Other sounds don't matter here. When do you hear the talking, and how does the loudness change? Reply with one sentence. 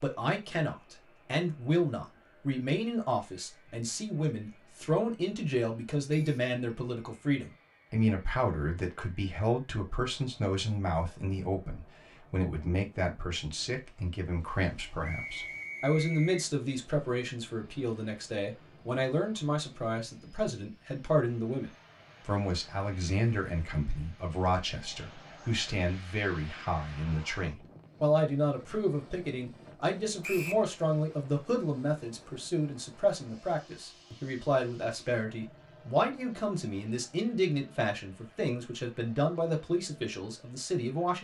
You can hear the talking from 0.0 to 41.1 s, at a steady volume.